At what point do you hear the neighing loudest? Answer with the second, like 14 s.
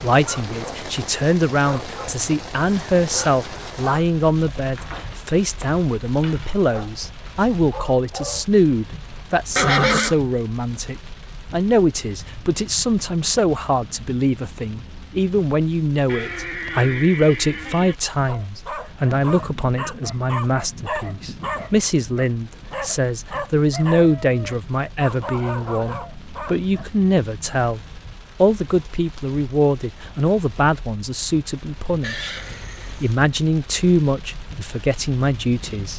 10 s.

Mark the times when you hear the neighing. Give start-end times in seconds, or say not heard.
9.6-10.2, 16.1-17.9, 32.0-33.1.